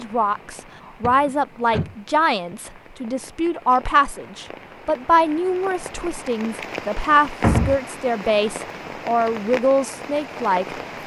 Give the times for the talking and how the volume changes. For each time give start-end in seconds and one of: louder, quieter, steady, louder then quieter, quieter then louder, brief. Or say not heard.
0.0-10.8 steady.